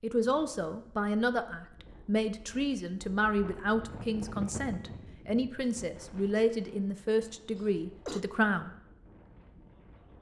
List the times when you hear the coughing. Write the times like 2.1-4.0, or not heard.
7.5-8.2.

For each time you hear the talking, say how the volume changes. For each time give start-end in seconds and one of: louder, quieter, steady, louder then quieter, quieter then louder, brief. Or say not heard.
0.0-8.7 steady.